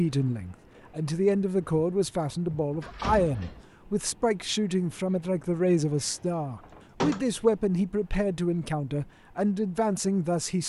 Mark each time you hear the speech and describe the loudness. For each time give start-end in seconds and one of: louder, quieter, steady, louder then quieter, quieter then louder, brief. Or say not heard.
0.0-10.6 steady.